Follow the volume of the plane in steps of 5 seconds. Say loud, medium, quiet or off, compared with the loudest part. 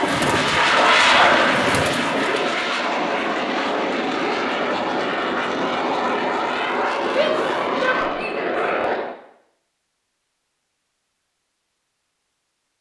loud, loud, off.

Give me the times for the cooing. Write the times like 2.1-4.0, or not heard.
0.0-2.6.